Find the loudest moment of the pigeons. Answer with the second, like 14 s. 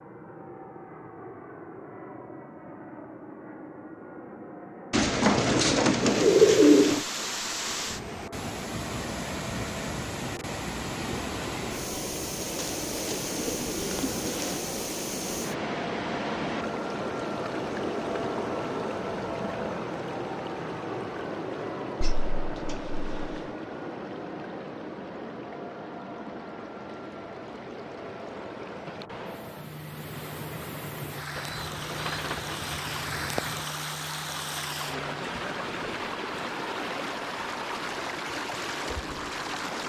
7 s.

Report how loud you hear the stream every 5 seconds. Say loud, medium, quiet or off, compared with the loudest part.
off, loud, loud, loud, medium, medium, loud, loud.